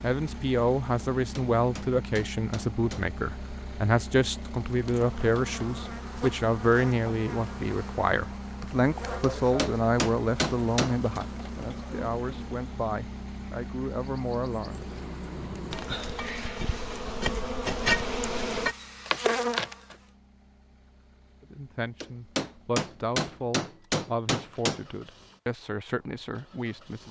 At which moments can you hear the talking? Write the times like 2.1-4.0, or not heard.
0.0-14.8, 21.4-27.0.